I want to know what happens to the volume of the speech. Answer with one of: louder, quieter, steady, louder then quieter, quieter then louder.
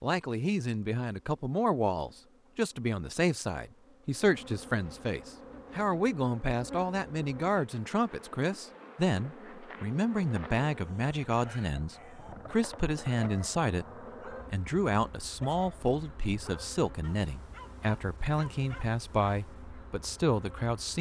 steady.